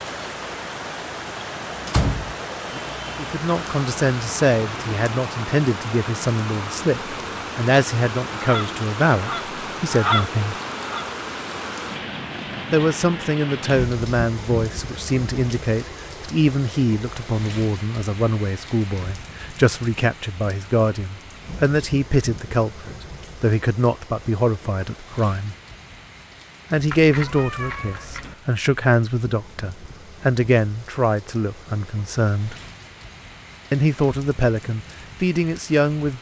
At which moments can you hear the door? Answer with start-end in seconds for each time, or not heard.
1.9-2.8.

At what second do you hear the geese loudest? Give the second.
10 s.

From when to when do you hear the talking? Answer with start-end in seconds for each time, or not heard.
3.1-10.6, 12.7-25.6, 26.7-32.5, 33.7-36.1.